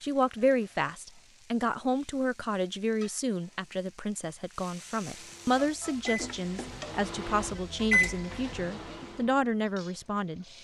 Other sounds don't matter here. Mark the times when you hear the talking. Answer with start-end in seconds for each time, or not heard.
0.0-10.4.